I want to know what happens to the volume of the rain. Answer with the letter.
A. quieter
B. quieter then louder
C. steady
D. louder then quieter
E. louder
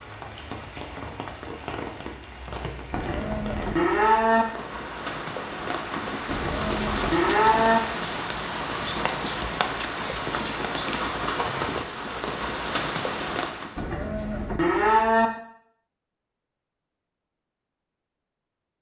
E.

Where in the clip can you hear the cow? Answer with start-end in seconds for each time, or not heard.
2.9-4.5, 6.2-7.8, 13.8-15.3.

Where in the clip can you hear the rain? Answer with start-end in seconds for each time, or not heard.
0.0-13.8.